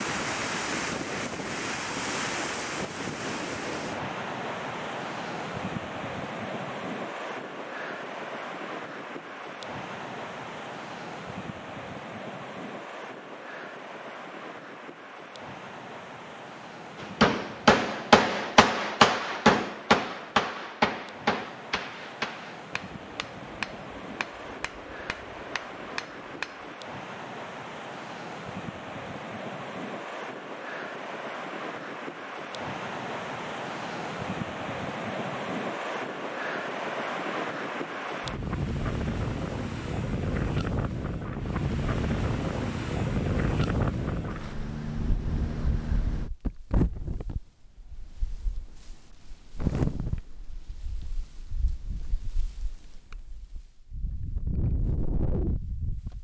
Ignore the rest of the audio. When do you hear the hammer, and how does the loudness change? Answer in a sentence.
The hammer can be heard from 16.9 to 26.8 s, getting quieter.